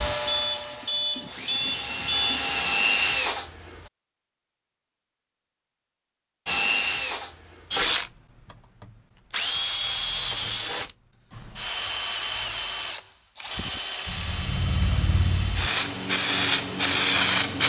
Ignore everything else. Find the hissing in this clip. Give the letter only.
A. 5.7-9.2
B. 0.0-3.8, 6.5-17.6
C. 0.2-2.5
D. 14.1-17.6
D.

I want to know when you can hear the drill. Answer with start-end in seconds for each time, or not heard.
0.0-3.8, 6.5-17.6.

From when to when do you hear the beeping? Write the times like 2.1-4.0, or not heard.
0.2-2.5.